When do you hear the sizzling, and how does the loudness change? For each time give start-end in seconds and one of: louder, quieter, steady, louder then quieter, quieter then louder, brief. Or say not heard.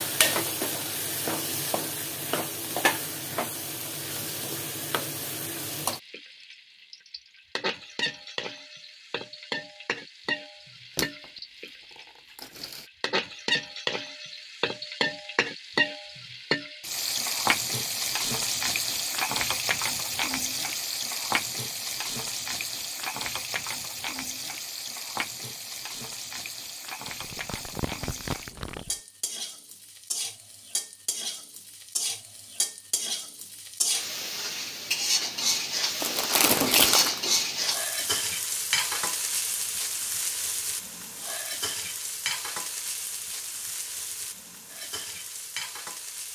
0.0-46.3 steady.